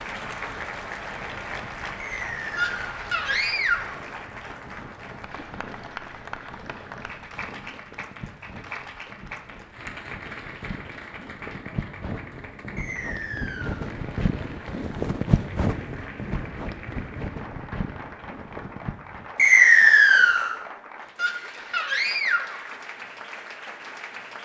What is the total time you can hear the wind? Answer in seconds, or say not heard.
19 s.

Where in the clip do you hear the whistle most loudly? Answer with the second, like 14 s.
20 s.